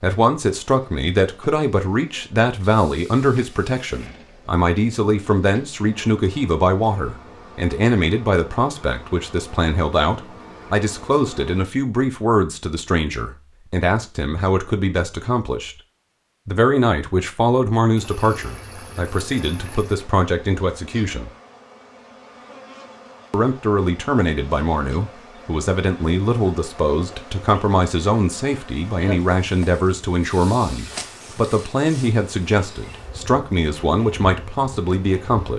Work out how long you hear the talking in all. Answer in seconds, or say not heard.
33 s.